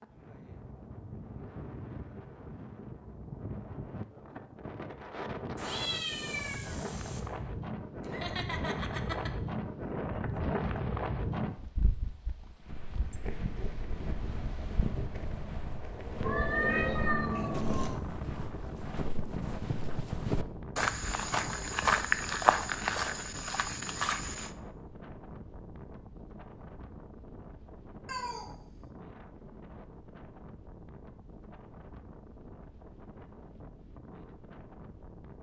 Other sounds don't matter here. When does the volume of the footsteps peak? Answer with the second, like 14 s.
22 s.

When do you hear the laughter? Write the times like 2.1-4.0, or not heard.
8.0-9.3.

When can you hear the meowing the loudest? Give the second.
17 s.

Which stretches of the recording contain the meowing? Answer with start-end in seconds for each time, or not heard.
5.5-7.2, 16.2-18.0, 28.1-28.5.